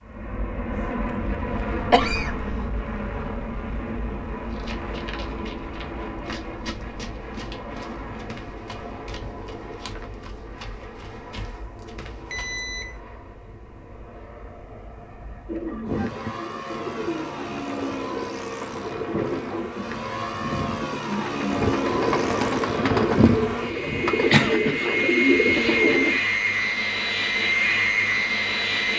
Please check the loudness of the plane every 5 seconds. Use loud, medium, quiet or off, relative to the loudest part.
medium, quiet, quiet, quiet, medium, loud.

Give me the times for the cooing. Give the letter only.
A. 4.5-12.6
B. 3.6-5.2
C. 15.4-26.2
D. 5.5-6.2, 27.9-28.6
C.